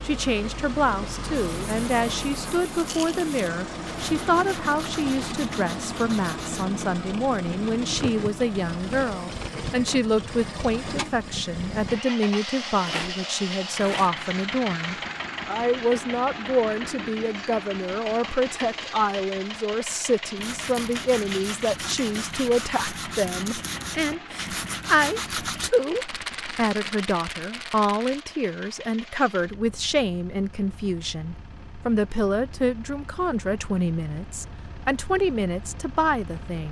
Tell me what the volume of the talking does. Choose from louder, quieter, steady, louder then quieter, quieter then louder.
steady.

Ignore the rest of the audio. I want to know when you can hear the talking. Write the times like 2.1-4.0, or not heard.
0.0-36.6.